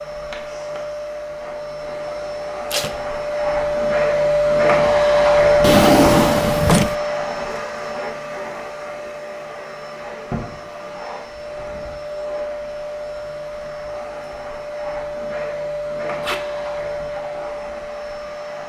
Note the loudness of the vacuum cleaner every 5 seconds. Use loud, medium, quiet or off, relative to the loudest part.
loud, loud, medium, medium.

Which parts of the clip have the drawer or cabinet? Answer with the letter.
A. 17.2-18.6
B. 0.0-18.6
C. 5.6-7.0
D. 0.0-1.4
C.